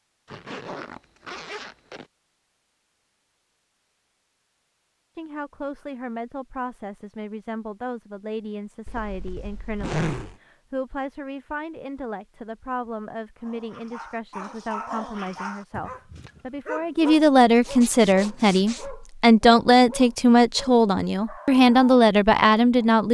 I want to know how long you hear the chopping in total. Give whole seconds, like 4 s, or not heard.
not heard.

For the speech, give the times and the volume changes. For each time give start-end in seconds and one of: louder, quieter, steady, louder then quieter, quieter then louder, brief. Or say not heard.
5.2-23.0 louder.